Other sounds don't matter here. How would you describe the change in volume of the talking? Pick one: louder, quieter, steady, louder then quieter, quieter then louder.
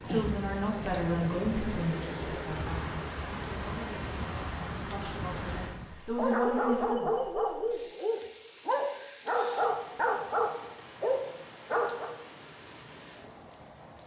quieter then louder.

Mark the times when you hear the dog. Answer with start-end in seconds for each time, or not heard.
6.2-12.2.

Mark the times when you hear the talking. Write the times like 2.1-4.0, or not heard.
0.1-7.1.